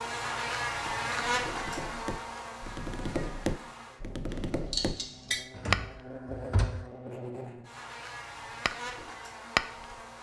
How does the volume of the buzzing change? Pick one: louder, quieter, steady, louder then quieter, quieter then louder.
quieter then louder.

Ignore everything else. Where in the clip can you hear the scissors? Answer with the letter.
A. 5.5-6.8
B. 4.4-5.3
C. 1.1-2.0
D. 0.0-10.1
B.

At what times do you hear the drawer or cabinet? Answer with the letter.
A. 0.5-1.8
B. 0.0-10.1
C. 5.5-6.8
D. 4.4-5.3
C.